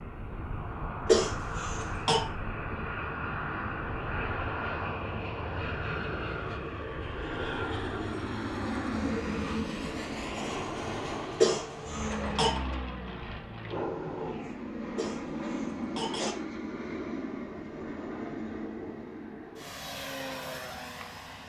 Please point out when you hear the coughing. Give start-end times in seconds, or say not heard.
1.1-2.2, 11.4-12.6, 14.9-16.4.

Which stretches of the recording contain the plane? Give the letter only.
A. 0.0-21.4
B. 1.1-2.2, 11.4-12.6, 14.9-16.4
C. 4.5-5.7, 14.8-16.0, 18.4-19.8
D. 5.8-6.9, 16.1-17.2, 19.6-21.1
A.